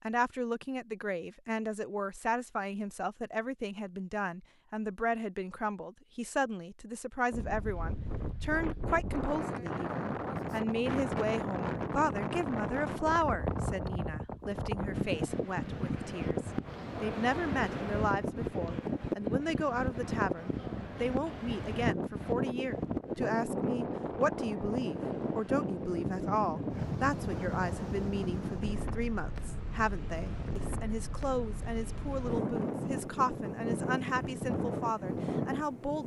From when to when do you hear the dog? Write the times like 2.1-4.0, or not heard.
not heard.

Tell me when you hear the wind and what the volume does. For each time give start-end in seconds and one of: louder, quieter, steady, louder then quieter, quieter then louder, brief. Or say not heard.
7.3-36.0 steady.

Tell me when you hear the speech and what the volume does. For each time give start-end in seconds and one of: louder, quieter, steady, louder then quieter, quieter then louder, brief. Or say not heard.
0.0-36.0 steady.